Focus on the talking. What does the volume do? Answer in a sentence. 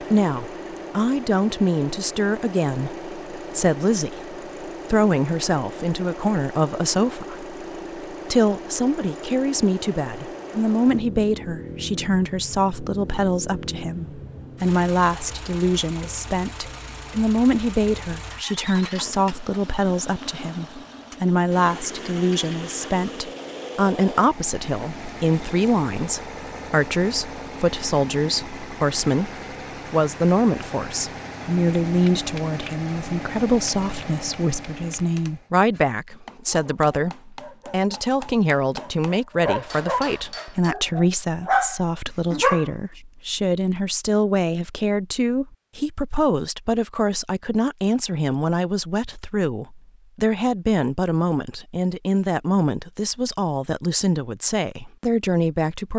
The volume of the talking stays about the same.